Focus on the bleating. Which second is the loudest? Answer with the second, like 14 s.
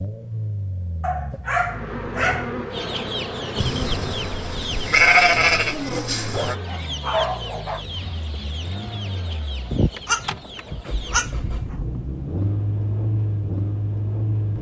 5 s.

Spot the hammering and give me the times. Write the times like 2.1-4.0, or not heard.
not heard.